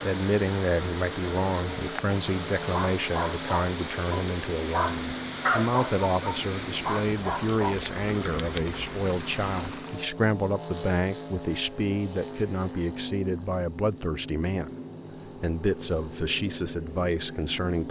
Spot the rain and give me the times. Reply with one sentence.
You can hear the rain from 0.0 to 10.1 s.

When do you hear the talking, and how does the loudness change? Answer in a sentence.
The talking can be heard from 0.0 to 17.8 s, at a steady volume.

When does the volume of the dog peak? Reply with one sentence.
The loudest moment of the dog is at 6 seconds.